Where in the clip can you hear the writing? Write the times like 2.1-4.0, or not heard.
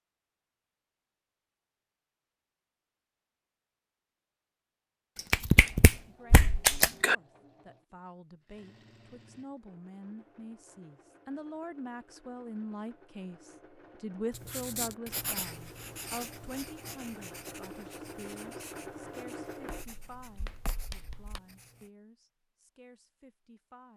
14.3-21.9.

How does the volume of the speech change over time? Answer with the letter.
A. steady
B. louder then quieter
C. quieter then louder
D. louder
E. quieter
B.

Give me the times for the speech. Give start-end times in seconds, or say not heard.
6.0-23.9.